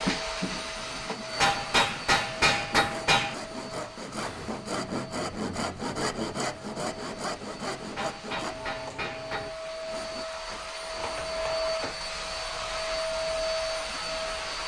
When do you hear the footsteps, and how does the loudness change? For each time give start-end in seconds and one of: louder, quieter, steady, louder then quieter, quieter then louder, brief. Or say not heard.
not heard.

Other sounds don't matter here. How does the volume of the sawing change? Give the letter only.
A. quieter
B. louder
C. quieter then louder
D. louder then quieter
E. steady
D.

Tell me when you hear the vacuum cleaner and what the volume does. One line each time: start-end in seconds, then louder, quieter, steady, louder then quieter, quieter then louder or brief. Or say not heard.
0.0-14.6 quieter then louder.